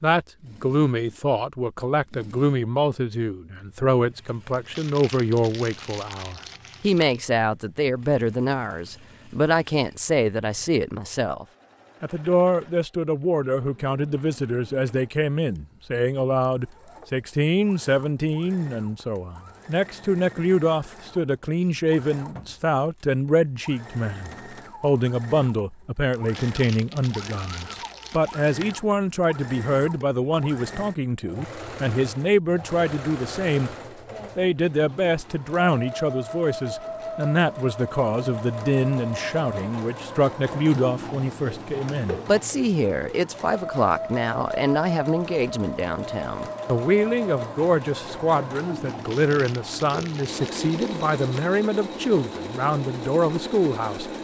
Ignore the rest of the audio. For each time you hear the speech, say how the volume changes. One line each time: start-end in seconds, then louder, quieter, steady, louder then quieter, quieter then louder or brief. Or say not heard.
0.0-33.7 steady
34.4-54.1 steady.